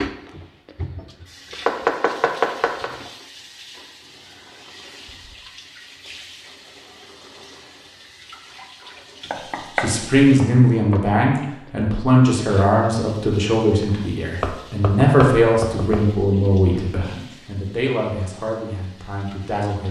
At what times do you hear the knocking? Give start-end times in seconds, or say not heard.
1.5-2.9, 9.3-11.1, 14.4-16.1.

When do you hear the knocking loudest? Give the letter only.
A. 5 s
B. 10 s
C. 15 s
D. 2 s
D.